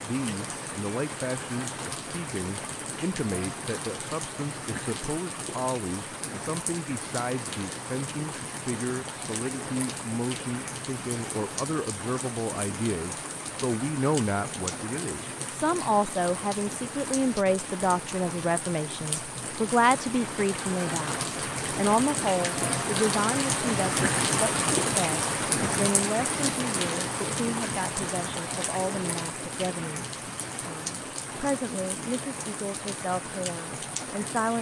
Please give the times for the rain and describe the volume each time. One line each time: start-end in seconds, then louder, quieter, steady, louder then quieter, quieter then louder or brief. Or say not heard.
0.0-34.5 louder then quieter.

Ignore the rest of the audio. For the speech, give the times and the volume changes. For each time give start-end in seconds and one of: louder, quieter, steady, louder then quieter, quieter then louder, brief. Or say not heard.
0.0-34.5 louder then quieter.